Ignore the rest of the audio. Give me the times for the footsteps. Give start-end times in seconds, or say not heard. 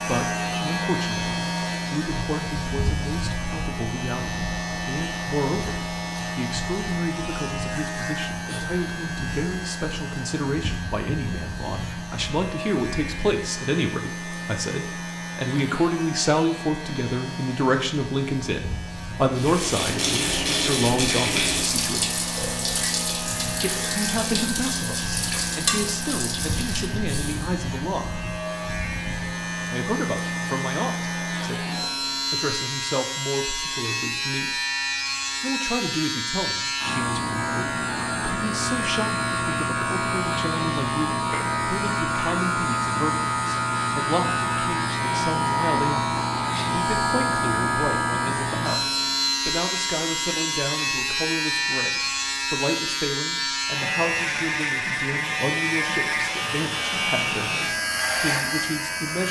not heard.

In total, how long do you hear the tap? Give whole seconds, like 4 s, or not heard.
8 s.